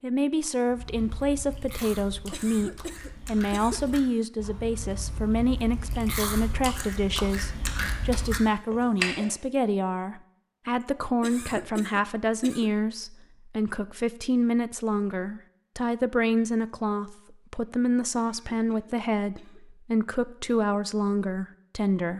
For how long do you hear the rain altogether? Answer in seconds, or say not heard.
not heard.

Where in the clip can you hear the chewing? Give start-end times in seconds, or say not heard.
0.7-9.3.